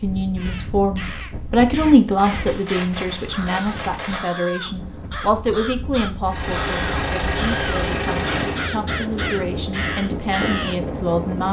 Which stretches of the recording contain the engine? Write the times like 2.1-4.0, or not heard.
6.2-8.7.